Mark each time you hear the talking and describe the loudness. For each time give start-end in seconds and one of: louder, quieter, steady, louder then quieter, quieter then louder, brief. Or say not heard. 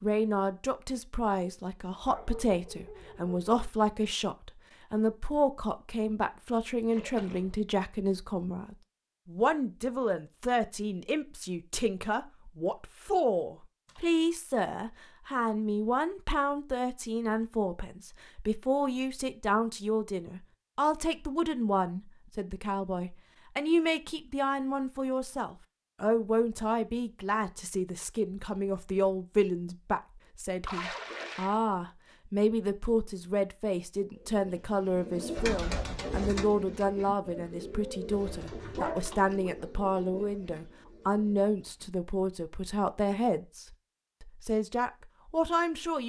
0.0-46.0 steady.